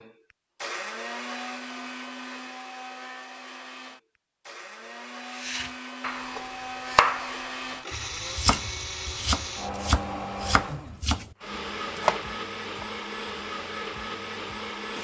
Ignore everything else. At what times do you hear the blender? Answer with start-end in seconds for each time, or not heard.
0.0-15.0.